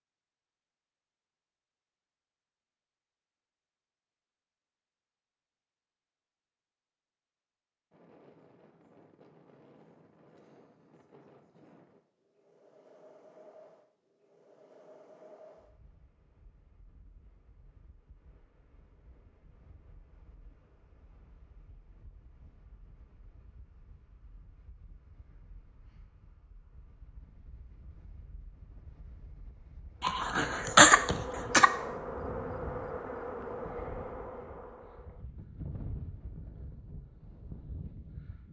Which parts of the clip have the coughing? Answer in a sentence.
You can hear the coughing from 30.0 to 31.7 s.